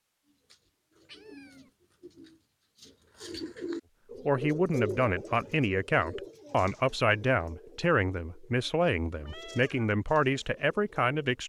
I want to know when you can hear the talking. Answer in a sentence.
You can hear the talking from 4.2 to 11.4 s.